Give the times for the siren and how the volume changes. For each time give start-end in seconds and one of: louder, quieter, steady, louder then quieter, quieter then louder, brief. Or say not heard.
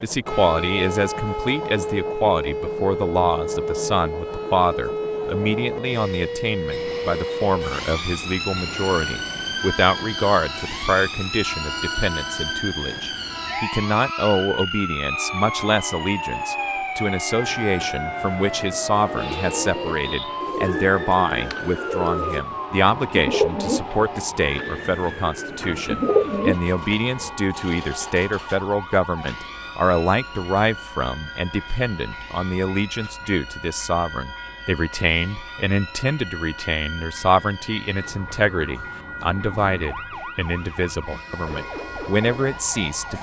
0.2-43.1 quieter.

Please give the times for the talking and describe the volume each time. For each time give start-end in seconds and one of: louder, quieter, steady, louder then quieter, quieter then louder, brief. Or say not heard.
0.0-43.1 steady.